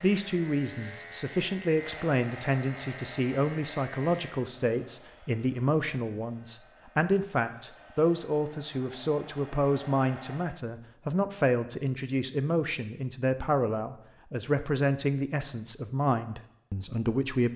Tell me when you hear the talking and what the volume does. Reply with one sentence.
The talking can be heard from 0.0 to 17.5 s, at a steady volume.